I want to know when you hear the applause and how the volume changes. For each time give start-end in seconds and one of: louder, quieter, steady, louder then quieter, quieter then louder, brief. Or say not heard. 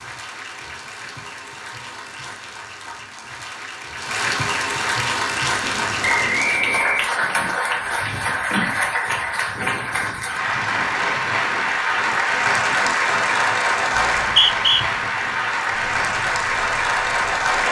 0.0-17.6 louder.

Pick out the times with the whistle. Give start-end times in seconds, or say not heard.
6.0-7.1, 13.9-14.8.